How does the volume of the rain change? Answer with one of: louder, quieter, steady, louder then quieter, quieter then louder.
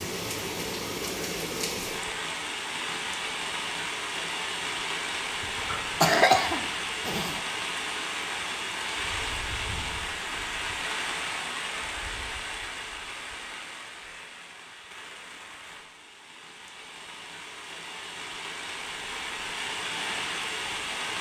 quieter then louder.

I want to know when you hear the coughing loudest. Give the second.
6 s.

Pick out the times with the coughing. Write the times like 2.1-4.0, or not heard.
5.4-7.4.